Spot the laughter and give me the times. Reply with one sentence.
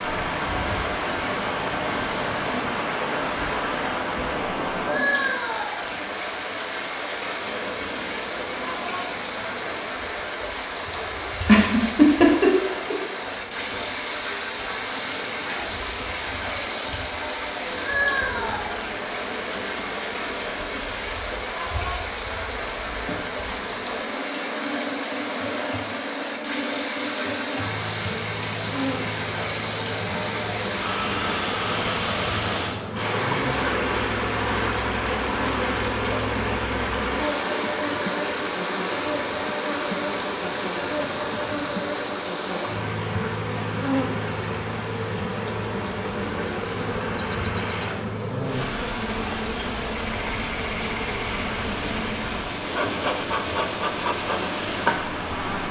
You can hear the laughter from 11.4 to 12.9 s.